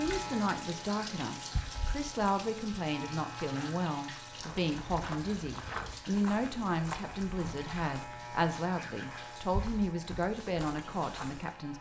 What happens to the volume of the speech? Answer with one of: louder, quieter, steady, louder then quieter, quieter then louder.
steady.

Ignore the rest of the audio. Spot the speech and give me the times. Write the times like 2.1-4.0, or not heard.
0.0-11.7.